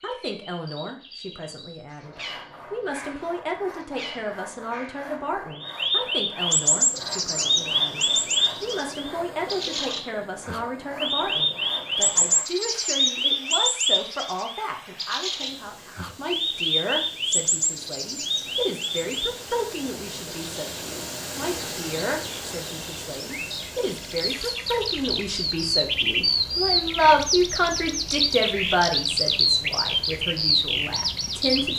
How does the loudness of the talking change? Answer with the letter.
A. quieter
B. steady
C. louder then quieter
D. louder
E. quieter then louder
D.